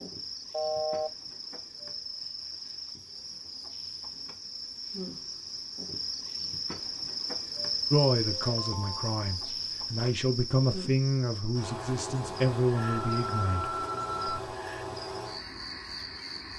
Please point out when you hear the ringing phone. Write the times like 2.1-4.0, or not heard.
0.5-1.1, 8.4-9.2, 12.8-14.4.